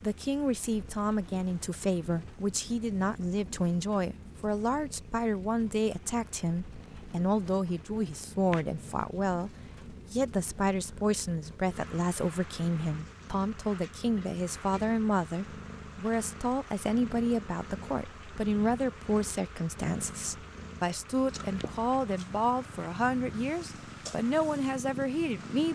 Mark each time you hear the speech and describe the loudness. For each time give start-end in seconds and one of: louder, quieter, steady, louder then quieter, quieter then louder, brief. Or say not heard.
0.0-25.7 steady.